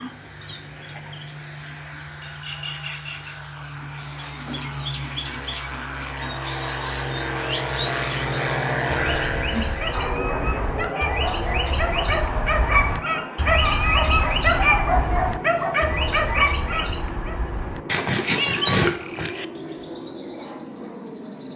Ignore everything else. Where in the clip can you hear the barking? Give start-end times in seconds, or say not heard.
9.4-17.4.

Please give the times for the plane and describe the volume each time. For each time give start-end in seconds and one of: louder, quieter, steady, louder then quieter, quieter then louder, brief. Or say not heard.
0.0-21.5 louder then quieter.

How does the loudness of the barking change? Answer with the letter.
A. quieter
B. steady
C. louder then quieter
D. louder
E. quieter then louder
D.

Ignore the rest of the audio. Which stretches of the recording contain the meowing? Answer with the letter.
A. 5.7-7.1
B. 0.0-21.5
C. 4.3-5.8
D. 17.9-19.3
D.